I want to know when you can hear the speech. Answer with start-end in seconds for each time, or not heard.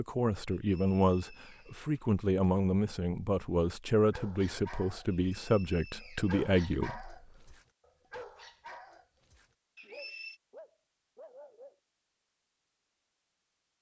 0.0-7.2.